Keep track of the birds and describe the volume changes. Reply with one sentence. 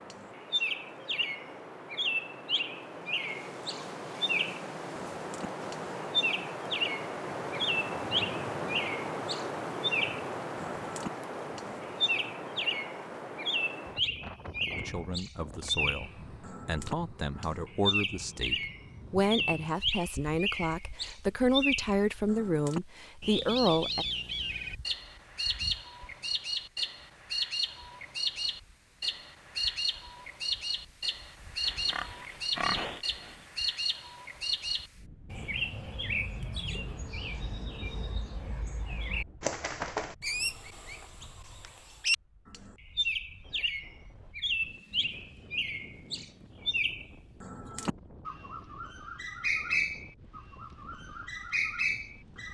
The loudness of the birds stays about the same.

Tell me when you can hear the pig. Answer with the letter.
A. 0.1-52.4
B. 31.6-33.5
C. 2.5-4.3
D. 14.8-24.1
B.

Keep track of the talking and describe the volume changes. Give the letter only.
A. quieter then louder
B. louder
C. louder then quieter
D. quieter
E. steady
B.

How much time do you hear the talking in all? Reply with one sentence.
The talking can be heard for 9 seconds in total.